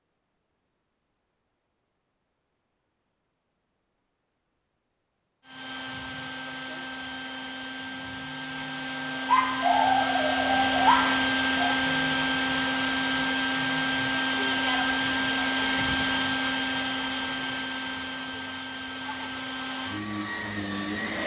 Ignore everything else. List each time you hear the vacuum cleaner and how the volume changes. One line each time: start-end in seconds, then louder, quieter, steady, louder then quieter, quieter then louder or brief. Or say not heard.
5.5-21.2 louder then quieter.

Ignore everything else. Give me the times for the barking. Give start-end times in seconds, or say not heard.
9.2-11.8.